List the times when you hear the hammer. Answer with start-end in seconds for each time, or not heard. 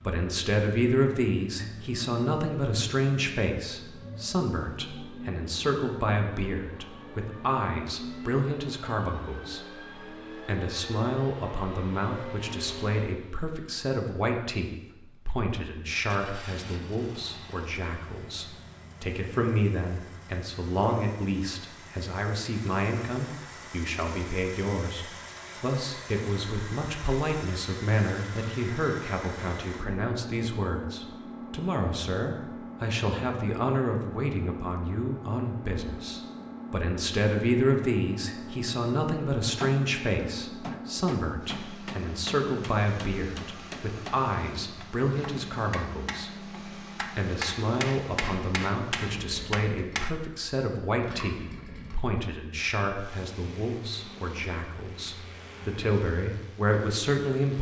39.6-50.1.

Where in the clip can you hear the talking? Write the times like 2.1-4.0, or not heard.
0.0-57.5.